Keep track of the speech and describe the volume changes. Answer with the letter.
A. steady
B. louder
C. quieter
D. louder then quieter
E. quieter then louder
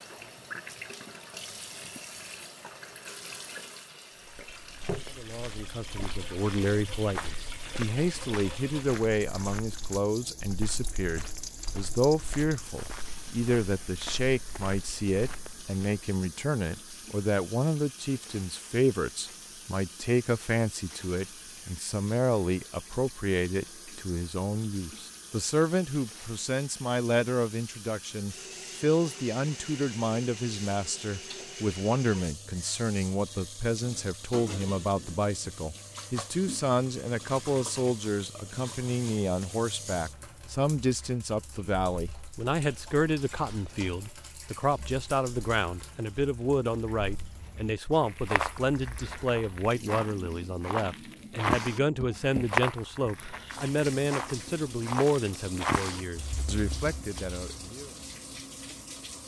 A.